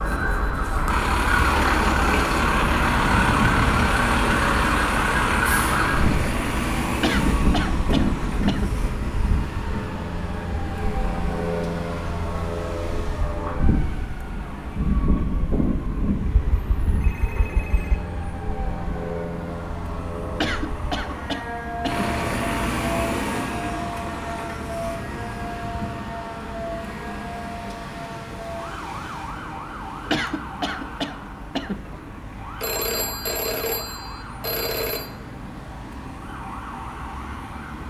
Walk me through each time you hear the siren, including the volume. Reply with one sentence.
You can hear the siren from 0.0 to 37.8 s, getting quieter.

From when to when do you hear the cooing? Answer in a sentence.
You can't hear the cooing here.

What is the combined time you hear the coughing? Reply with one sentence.
You can hear the coughing for 6 seconds altogether.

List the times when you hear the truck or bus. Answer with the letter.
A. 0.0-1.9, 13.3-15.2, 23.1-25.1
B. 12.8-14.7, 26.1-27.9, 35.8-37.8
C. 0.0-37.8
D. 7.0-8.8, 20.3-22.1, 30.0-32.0
C.